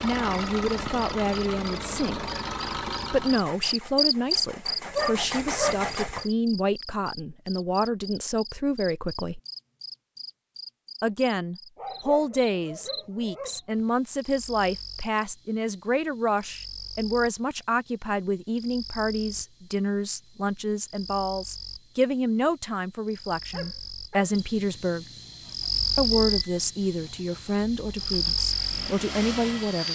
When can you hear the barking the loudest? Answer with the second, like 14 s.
5 s.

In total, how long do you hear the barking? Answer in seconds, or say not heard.
4 s.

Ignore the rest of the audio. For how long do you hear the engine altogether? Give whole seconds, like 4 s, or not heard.
11 s.